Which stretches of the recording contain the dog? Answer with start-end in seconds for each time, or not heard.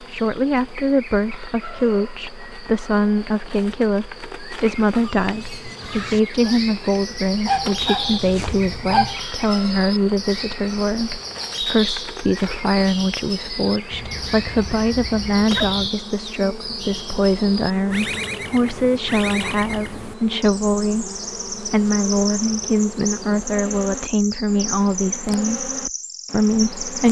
7.5-9.2, 13.9-15.9.